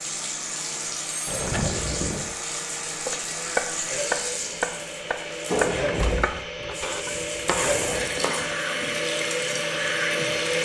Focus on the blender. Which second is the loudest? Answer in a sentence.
The loudest moment of the blender is at 10 seconds.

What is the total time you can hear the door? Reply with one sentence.
The door can be heard for 4 seconds in total.